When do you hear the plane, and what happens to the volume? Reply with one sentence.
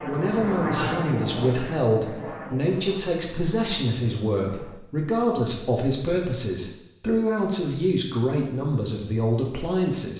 You can hear the plane from 0.0 to 4.8 s, getting quieter.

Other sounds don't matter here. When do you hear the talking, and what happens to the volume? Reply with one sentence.
The talking can be heard from 0.1 to 10.1 s, at a steady volume.